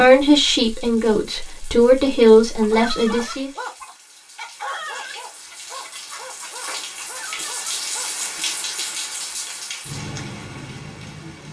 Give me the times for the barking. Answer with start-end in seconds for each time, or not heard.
2.6-9.0.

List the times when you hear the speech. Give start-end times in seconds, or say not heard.
0.0-3.5.